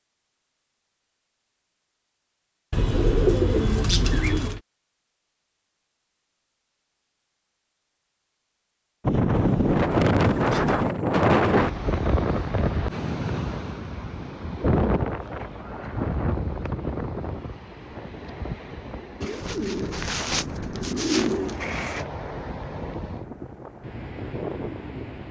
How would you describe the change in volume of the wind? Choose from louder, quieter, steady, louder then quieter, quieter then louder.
quieter.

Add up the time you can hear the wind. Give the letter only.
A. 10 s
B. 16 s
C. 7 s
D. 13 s
B.